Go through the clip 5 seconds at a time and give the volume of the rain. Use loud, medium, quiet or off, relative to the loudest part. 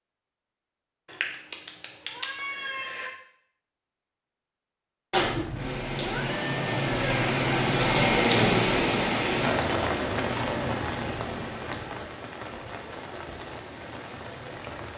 off, loud, medium.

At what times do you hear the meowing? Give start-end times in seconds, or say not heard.
1.1-3.1, 5.1-7.1, 10.1-12.1.